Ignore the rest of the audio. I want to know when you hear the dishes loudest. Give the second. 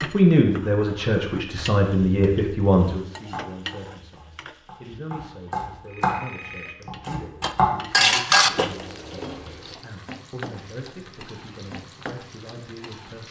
8 s.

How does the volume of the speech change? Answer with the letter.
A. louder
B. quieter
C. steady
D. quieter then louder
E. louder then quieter
B.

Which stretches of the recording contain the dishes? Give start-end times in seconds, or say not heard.
7.4-9.8.